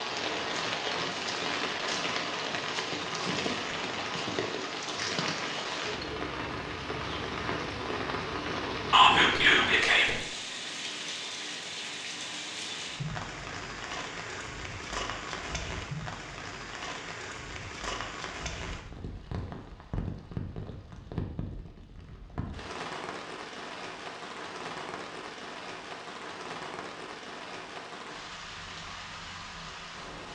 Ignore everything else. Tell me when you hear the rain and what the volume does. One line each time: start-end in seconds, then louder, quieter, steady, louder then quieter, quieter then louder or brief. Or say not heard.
0.0-30.3 quieter.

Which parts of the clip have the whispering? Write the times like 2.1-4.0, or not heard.
8.9-10.2.